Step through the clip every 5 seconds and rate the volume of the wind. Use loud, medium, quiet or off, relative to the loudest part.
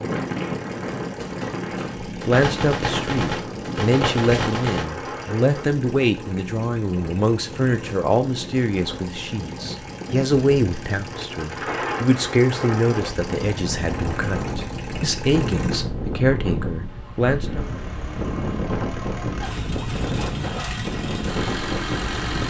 loud, medium, loud, loud, loud.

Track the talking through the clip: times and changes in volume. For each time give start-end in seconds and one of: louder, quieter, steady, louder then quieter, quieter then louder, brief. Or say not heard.
2.2-17.6 steady.